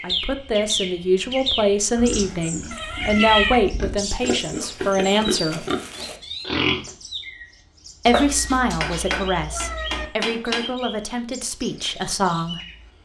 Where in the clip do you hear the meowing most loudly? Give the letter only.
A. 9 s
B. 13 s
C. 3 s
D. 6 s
C.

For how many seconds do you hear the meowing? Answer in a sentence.
The meowing can be heard for 3 seconds in total.